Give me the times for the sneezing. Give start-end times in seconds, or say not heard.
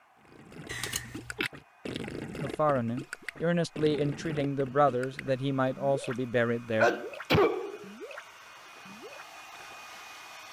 0.7-1.5, 6.8-7.8.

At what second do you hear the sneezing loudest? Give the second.
7 s.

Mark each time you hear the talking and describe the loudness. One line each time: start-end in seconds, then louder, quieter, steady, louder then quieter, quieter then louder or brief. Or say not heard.
2.4-6.9 steady.